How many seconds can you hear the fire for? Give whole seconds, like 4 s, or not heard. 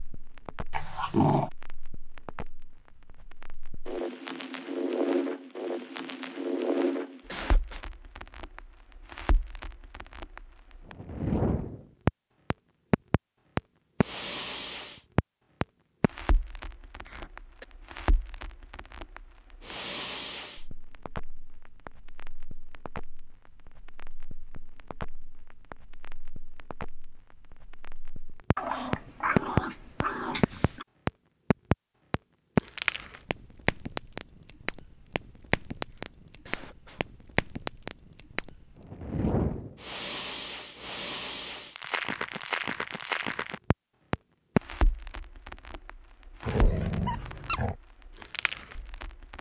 49 s.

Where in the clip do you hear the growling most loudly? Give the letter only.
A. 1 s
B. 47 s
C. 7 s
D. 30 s
A.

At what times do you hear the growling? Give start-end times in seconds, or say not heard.
0.7-1.5, 28.6-30.9, 46.4-47.8.